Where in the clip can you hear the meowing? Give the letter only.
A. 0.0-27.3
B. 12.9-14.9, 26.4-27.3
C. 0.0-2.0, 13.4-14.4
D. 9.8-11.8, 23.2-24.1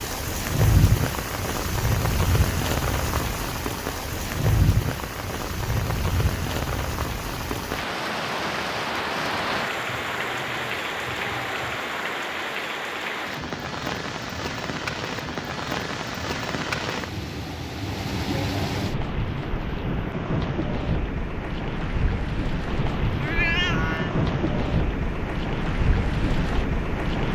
D.